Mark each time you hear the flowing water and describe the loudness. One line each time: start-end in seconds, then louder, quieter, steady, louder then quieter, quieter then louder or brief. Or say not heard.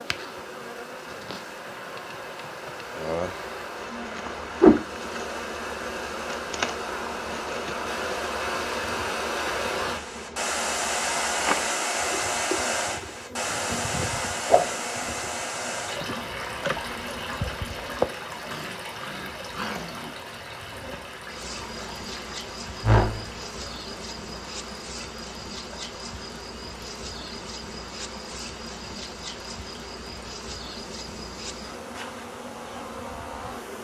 0.0-33.8 louder then quieter.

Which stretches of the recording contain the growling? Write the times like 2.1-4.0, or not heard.
18.4-20.1.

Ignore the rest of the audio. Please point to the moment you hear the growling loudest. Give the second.
20 s.